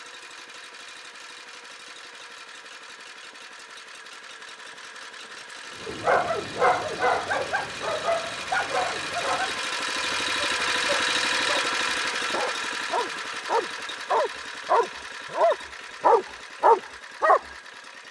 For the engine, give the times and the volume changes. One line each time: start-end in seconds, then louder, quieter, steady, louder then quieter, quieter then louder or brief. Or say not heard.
0.0-18.0 louder then quieter.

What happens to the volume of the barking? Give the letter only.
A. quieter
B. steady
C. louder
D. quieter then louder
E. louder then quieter
D.